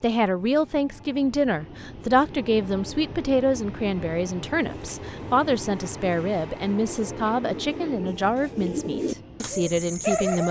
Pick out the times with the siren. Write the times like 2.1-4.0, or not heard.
not heard.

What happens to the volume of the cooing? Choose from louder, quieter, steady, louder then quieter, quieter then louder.
louder.